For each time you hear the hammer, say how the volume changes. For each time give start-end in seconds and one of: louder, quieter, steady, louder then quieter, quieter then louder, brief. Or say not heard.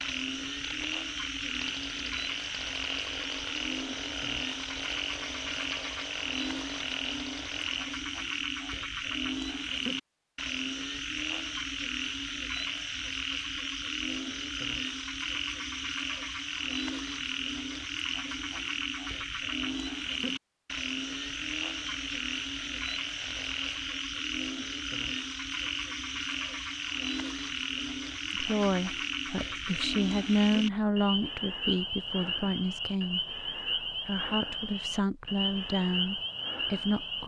not heard.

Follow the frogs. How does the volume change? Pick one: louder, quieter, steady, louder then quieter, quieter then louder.
steady.